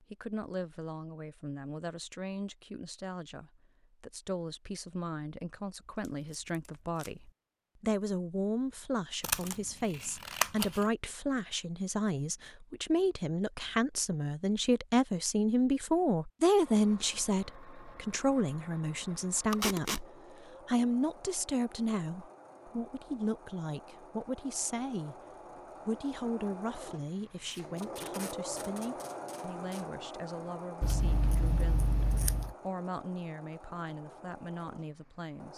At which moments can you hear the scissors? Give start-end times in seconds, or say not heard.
9.2-10.8, 30.8-32.5.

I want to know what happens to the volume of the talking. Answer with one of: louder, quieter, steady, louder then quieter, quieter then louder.
louder then quieter.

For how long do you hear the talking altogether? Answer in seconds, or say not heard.
35 s.